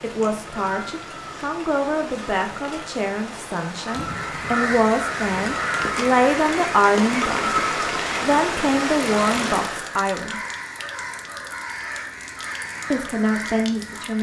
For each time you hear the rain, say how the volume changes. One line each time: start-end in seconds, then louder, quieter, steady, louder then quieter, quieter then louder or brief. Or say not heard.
0.0-10.0 louder.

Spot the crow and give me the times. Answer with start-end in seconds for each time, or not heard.
4.0-14.1.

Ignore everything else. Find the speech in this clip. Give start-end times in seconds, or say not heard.
0.0-7.6, 8.2-10.4, 12.9-14.1.